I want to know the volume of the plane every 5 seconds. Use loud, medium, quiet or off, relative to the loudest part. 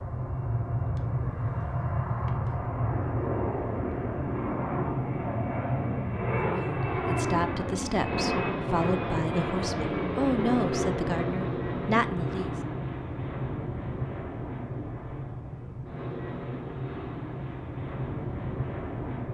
loud, loud, loud, medium.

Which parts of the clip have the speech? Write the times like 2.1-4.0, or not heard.
6.4-12.5.